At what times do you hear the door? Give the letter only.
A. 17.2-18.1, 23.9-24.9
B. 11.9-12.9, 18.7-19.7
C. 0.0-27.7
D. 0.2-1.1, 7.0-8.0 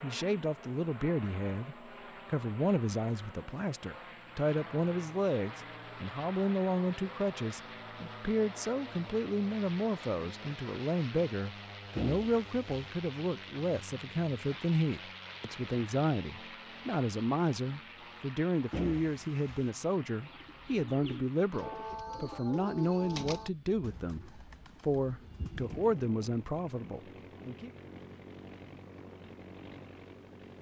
B.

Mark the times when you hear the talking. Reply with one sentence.
The talking can be heard from 0.0 to 27.7 s.